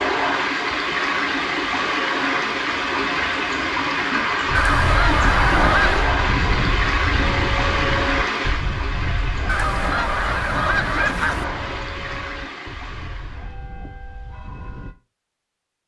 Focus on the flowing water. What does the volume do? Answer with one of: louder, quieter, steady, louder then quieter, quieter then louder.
quieter.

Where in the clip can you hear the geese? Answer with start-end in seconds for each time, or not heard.
4.5-6.2, 9.4-11.4.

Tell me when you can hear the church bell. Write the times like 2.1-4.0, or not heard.
4.5-14.9.